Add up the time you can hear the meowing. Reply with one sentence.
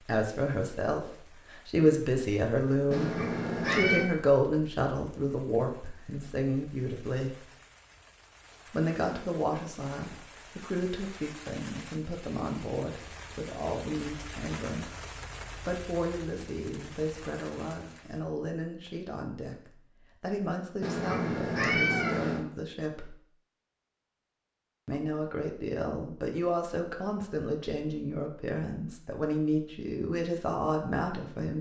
The meowing can be heard for 3 seconds in total.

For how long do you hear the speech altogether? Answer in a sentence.
The speech can be heard for 28 seconds in total.